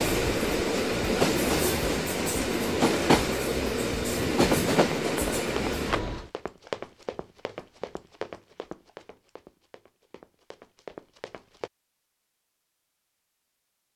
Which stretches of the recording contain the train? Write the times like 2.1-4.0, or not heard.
0.0-6.3.